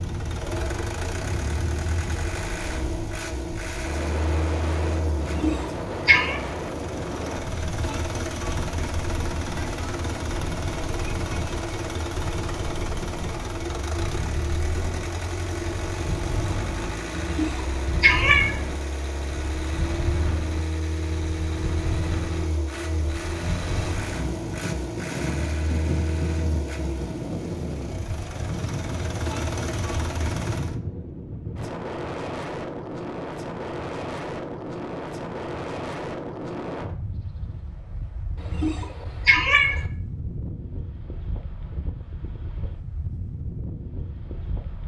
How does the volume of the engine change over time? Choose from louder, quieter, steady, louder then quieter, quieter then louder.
steady.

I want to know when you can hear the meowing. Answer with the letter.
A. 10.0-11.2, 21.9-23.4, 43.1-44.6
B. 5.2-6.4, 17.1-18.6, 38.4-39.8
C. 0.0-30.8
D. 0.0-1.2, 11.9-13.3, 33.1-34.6
B.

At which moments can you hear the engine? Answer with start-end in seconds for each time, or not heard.
0.0-30.8.